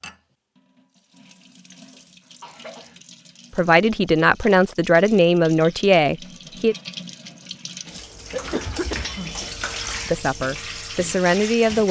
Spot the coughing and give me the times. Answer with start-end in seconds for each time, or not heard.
1.9-3.0, 8.3-9.6.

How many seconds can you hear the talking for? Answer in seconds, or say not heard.
5 s.